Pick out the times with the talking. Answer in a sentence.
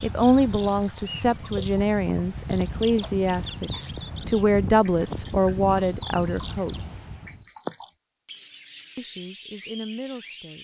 The talking can be heard from 0.0 to 6.8 s and from 8.9 to 10.5 s.